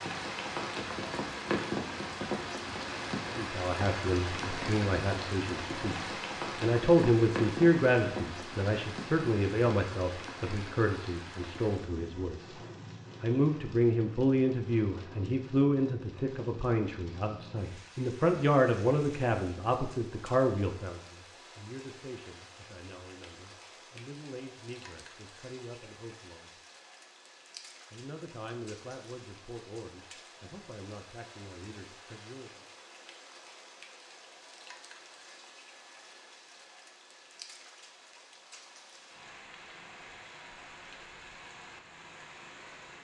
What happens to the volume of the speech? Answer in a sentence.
The volume of the speech goes down.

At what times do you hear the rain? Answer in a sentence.
The rain can be heard from 0.0 to 42.9 s.